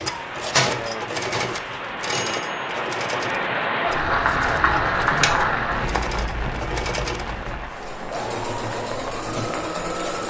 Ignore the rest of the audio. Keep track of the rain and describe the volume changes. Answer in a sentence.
The volume of the rain goes up, then down.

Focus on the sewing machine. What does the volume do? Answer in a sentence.
The volume of the sewing machine goes down, then up.